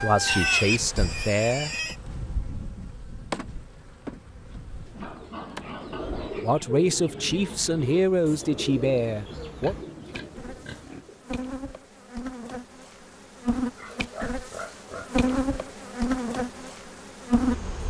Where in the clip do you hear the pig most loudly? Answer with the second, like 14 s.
1 s.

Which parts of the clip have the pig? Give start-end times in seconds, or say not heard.
0.2-1.9, 4.9-6.5, 9.6-11.1, 13.8-15.5.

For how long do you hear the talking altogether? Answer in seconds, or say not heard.
5 s.